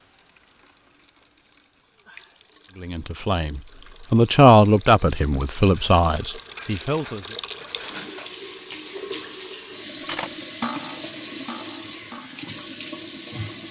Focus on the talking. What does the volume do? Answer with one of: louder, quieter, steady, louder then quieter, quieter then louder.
louder then quieter.